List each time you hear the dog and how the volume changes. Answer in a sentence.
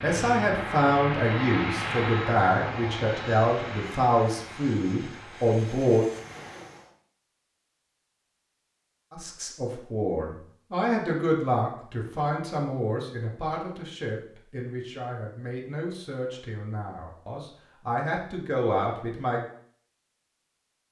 The dog can't be heard in this clip.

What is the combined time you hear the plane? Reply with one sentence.
The plane can be heard for 7 seconds in total.